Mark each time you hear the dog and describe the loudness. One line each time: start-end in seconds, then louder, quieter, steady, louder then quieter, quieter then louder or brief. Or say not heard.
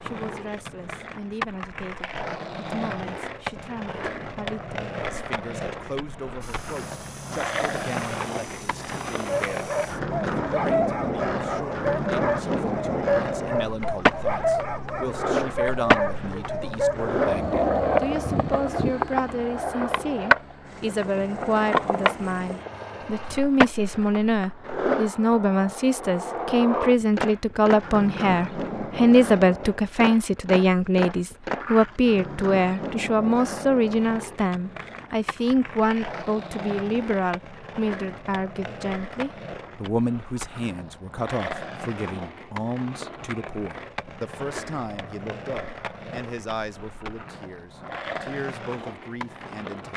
9.2-17.8 steady.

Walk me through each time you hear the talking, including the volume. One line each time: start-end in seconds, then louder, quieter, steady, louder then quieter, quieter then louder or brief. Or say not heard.
0.0-49.9 louder then quieter.